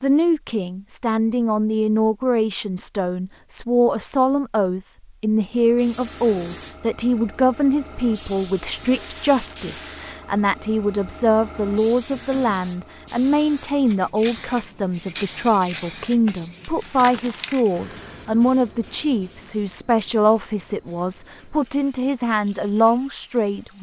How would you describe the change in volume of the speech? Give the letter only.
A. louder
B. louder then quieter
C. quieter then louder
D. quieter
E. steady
E.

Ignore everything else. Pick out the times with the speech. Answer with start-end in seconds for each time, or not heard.
0.0-23.7.